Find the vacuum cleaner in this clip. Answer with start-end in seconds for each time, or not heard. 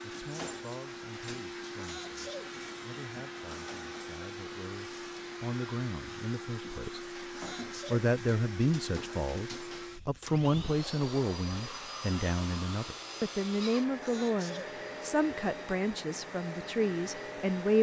0.0-17.7.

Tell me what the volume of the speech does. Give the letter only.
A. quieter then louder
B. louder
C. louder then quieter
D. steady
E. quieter
B.